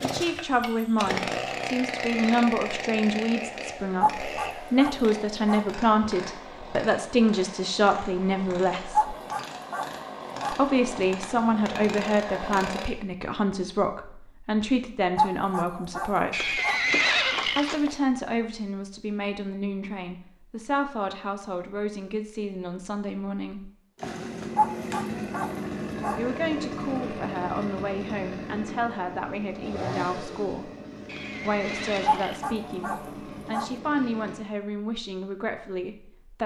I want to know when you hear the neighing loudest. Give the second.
17 s.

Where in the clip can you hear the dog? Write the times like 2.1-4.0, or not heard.
4.0-5.7, 8.9-10.6, 15.2-16.8, 24.6-26.2, 32.0-33.7.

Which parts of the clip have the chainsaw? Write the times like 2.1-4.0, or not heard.
0.0-12.9, 23.9-34.5.